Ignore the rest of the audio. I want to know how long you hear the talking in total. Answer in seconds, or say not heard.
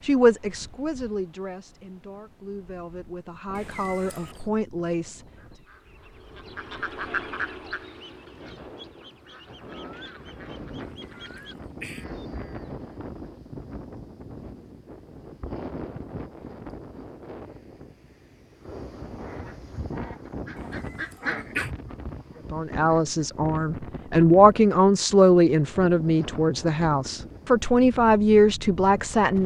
12 s.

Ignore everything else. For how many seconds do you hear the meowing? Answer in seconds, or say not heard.
3 s.